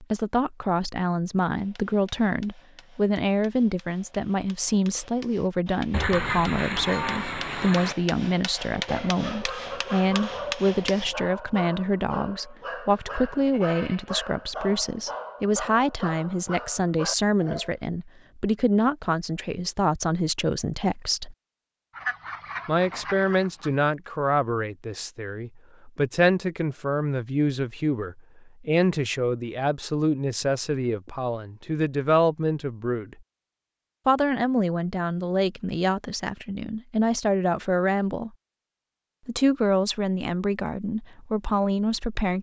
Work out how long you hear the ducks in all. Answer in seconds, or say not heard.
4 s.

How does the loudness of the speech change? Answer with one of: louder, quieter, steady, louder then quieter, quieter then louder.
steady.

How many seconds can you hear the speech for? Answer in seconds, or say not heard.
39 s.